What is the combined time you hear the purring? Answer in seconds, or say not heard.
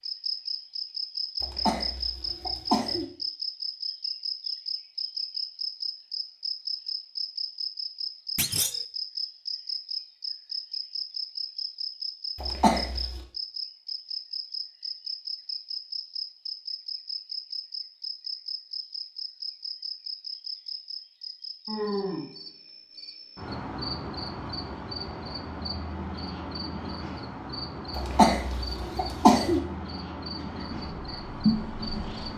2 s.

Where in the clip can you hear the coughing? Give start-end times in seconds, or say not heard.
1.4-3.0, 12.3-13.2, 27.9-29.6.